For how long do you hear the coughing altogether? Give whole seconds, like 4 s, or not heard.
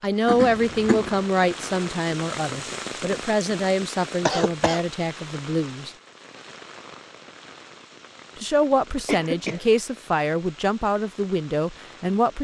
2 s.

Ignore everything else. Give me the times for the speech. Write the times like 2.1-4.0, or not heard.
0.0-5.9, 8.3-12.3.